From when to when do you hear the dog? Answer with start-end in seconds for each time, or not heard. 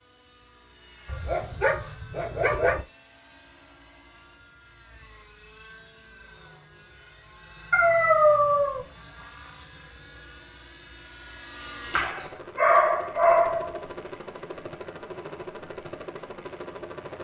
1.1-2.9, 7.7-8.8, 11.9-13.8.